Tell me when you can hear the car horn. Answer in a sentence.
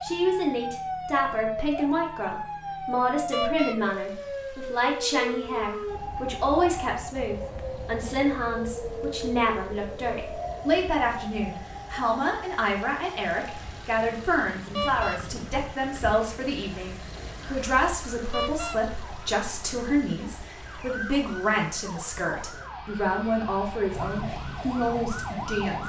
The car horn can be heard from 3.3 to 3.8 s, from 14.8 to 15.2 s and from 18.3 to 18.8 s.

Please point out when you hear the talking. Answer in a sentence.
You can hear the talking from 0.0 to 25.8 s.